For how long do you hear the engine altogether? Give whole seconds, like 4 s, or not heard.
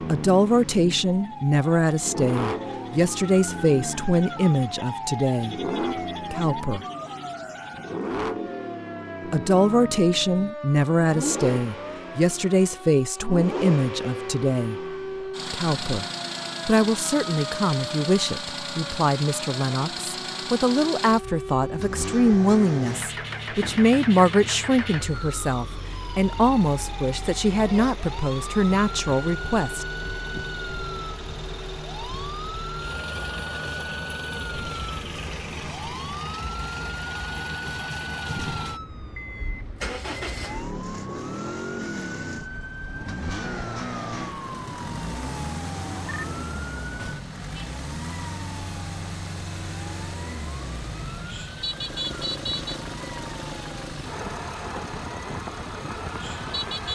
57 s.